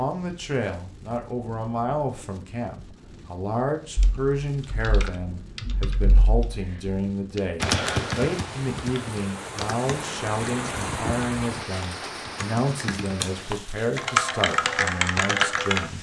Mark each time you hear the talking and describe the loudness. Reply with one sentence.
The talking can be heard from 0.0 to 15.9 s, at a steady volume.